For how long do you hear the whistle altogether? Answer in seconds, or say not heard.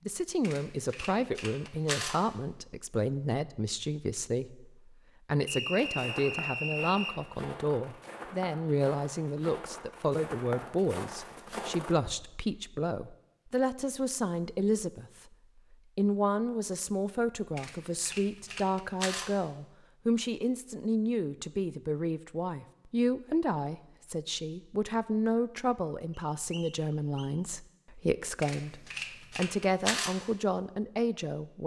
3 s.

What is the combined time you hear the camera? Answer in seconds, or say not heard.
5 s.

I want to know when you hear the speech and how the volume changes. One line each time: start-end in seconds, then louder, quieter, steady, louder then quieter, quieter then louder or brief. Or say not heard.
0.1-31.6 steady.